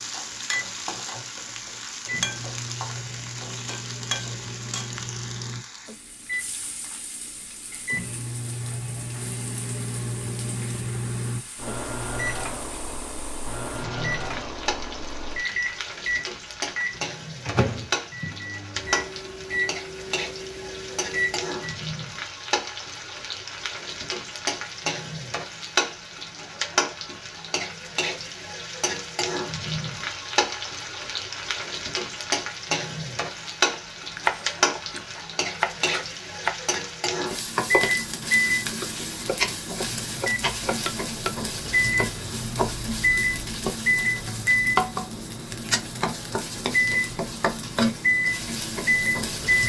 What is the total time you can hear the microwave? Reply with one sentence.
You can hear the microwave for 34 seconds altogether.